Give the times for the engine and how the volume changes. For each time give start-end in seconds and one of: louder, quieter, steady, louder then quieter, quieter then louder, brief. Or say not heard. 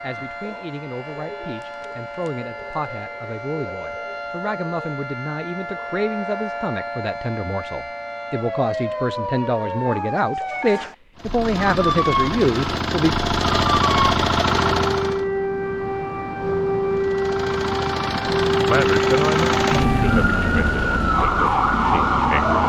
11.2-15.2 louder
16.9-22.6 louder then quieter.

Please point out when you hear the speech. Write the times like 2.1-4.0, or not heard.
0.0-13.2, 18.6-22.6.